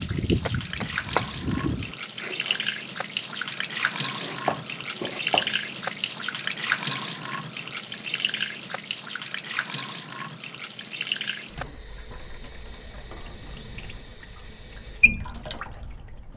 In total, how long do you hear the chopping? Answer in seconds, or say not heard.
4 s.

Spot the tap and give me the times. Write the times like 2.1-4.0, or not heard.
0.0-16.3.